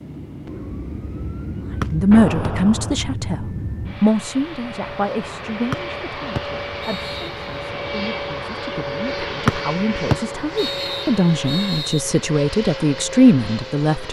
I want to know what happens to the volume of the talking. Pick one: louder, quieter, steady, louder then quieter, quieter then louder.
quieter then louder.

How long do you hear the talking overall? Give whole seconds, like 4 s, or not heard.
12 s.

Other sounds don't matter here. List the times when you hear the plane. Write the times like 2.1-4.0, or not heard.
0.0-14.0.